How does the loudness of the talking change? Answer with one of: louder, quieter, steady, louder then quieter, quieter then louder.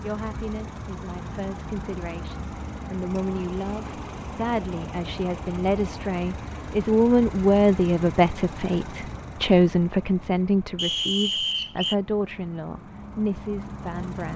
louder then quieter.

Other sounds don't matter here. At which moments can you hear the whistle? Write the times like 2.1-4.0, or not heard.
10.8-11.9.